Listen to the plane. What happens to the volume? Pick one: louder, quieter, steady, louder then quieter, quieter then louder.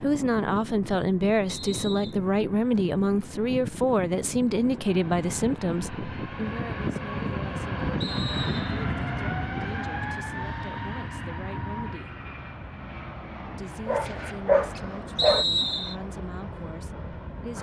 louder then quieter.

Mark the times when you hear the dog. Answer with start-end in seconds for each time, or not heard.
13.8-15.4.